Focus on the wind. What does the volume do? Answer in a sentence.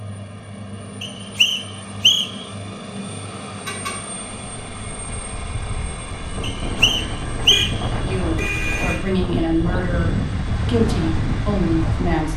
The loudness of the wind goes up.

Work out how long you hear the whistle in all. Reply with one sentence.
The whistle can be heard for 3 seconds in total.